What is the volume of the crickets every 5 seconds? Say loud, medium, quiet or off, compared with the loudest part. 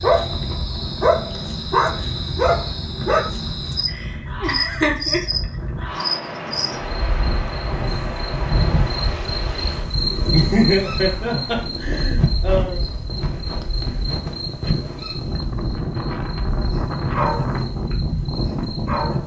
loud, loud, loud, medium.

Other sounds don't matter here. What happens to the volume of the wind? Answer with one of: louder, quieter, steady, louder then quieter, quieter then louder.
louder.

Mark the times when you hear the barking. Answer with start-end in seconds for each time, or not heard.
0.0-3.2, 16.6-19.2.